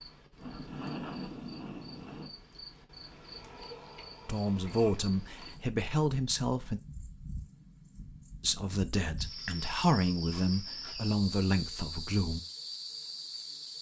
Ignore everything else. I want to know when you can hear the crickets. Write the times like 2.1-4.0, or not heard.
0.0-13.7.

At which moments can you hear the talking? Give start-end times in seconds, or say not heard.
4.2-6.8, 8.4-12.4.